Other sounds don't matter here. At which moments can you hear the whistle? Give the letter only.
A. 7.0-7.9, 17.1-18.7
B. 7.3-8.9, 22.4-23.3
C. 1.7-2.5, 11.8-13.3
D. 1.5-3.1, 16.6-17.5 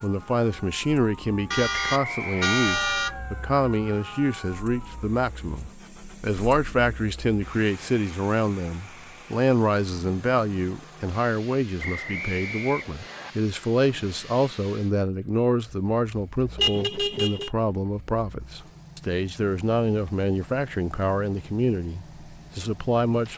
C.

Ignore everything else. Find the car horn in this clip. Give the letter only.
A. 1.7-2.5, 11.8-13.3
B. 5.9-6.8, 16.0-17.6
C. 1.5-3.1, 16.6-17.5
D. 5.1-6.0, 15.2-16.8
C.